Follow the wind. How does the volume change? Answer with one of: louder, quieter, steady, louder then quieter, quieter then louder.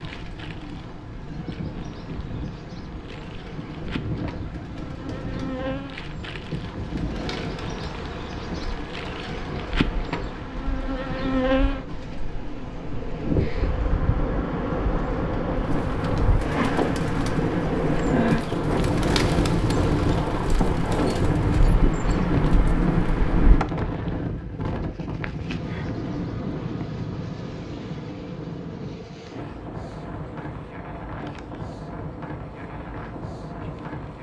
louder then quieter.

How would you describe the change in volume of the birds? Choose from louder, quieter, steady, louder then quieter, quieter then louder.
louder.